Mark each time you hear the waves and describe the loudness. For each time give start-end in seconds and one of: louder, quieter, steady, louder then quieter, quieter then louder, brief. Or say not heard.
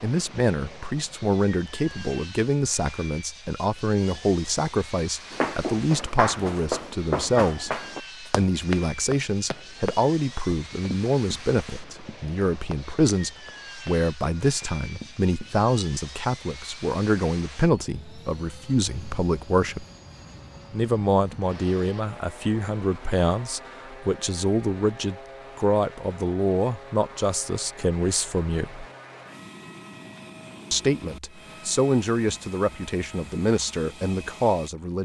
not heard.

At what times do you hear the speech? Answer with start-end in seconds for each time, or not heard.
0.0-19.9, 20.7-28.9, 30.7-35.0.